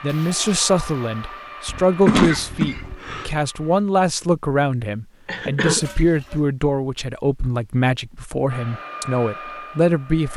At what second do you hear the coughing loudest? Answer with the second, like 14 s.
2 s.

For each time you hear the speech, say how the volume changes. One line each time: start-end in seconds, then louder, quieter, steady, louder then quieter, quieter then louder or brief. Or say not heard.
0.0-10.3 steady.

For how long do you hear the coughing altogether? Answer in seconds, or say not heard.
2 s.